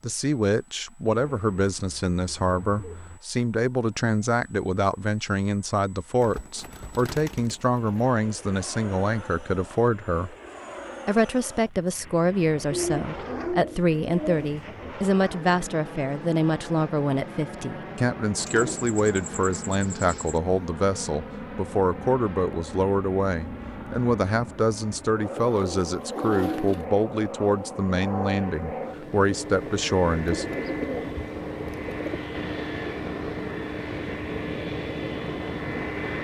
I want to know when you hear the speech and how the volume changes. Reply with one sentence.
You can hear the speech from 0.0 to 10.3 s, at a steady volume; and from 11.1 to 30.5 s, at a steady volume.